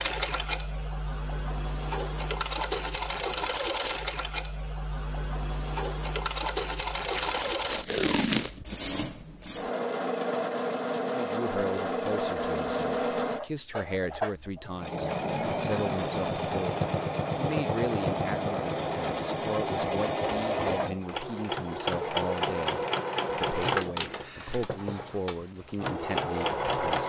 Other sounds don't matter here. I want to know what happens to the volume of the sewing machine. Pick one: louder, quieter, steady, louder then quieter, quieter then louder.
steady.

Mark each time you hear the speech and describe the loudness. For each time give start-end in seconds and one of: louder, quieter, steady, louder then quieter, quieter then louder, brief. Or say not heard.
11.1-27.0 steady.